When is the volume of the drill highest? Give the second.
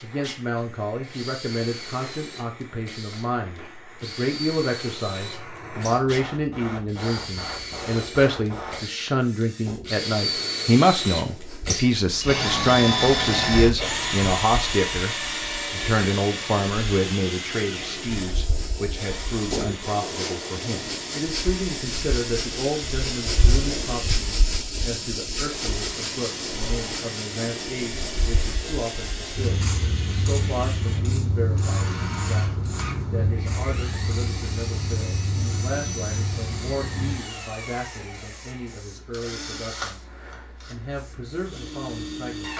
13 s.